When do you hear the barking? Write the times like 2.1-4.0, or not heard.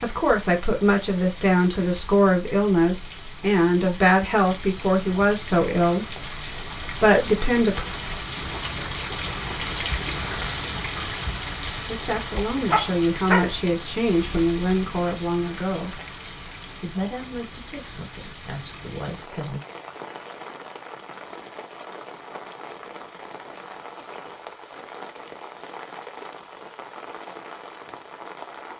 12.7-13.5.